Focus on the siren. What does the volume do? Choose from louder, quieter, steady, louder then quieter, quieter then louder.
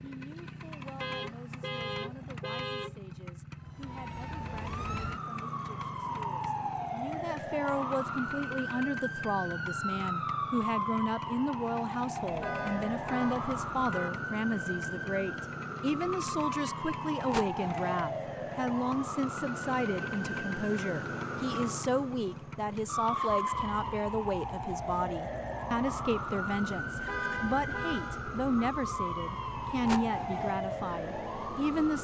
steady.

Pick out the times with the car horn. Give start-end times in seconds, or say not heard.
1.0-3.0, 12.3-14.1, 26.9-28.4.